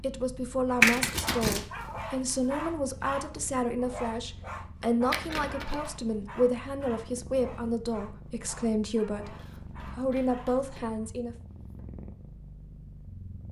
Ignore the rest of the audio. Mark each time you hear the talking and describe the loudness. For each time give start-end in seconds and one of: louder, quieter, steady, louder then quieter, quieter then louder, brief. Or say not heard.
0.0-11.3 steady.